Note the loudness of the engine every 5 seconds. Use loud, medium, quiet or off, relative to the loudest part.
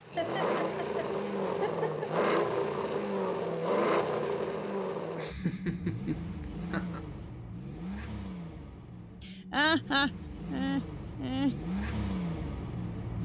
loud, medium, medium.